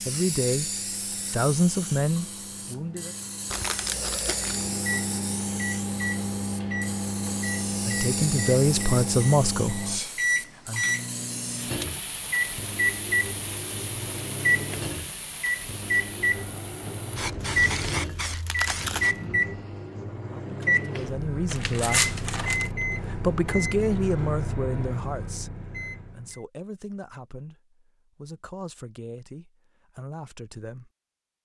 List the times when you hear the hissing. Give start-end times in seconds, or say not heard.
0.0-19.6.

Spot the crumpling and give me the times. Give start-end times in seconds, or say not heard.
3.5-4.7, 17.4-19.1, 21.5-22.7.